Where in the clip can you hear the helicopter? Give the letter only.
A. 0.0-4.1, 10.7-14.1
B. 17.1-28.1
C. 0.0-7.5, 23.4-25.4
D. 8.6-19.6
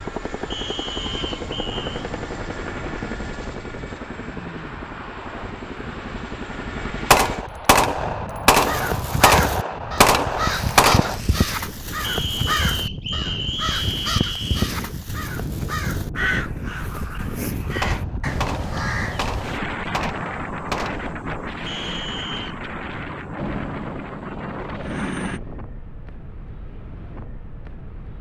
C.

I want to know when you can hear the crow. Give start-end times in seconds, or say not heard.
8.6-19.6.